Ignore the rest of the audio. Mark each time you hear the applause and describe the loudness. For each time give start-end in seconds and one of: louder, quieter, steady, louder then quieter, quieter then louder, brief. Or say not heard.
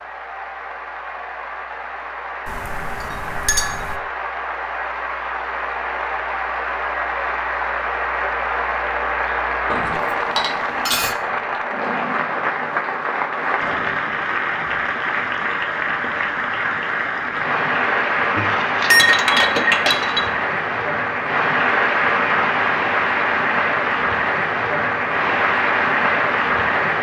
0.0-26.9 louder.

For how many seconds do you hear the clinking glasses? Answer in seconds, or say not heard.
5 s.